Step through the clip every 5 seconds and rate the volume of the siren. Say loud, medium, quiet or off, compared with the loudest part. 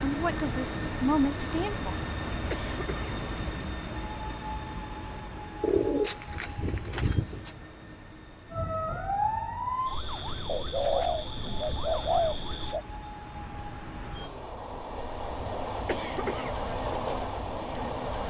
off, loud, loud, off.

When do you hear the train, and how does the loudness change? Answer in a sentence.
The train can be heard from 0.0 to 18.2 s, getting quieter then louder.